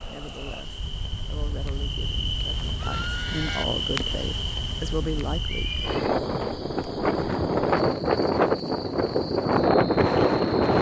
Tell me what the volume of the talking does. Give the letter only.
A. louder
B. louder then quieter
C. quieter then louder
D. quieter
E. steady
A.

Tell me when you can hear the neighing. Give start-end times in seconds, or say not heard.
2.8-3.6, 5.5-6.0.